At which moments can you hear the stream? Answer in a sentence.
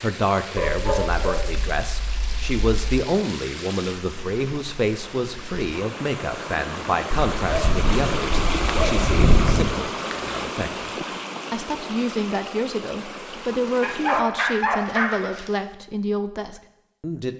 The stream can be heard from 0.0 to 14.2 s.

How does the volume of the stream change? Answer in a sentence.
The volume of the stream goes up, then down.